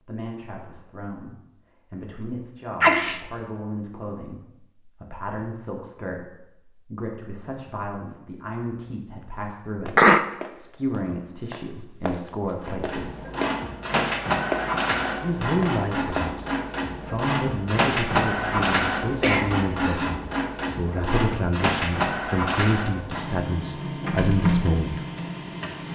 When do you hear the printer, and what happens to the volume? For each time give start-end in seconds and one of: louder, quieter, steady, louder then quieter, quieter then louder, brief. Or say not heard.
12.6-25.9 steady.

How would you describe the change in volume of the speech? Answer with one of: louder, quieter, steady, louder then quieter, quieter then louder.
louder.